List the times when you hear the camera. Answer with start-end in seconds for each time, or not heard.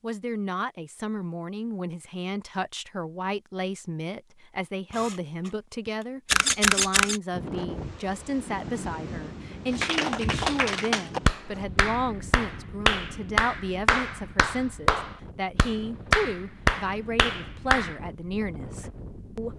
4.9-7.2.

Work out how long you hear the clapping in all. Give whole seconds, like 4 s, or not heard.
8 s.